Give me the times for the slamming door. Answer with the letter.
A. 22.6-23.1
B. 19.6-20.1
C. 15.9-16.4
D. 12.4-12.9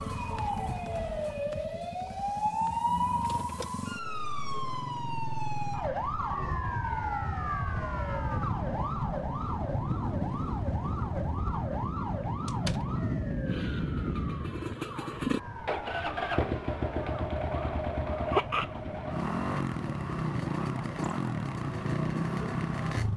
D.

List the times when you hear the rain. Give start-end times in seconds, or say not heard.
not heard.